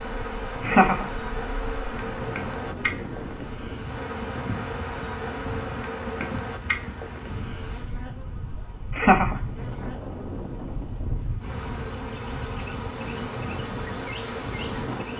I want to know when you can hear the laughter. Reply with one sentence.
You can hear the laughter from 0.7 to 1.1 s and from 8.9 to 9.4 s.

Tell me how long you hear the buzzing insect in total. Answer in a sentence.
You can hear the buzzing insect for 15 seconds altogether.